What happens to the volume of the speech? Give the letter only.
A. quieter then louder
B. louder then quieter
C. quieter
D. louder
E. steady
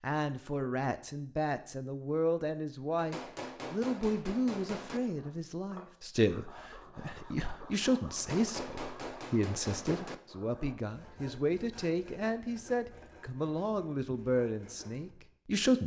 E.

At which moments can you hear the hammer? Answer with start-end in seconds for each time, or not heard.
3.0-5.0, 8.2-10.2.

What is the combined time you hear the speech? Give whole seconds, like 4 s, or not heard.
16 s.